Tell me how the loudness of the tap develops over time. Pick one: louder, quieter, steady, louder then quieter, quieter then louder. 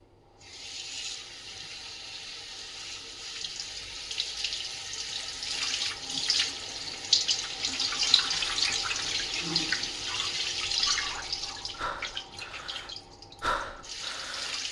louder then quieter.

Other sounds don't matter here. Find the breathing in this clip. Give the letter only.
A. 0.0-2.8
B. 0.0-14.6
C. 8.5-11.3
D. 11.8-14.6
D.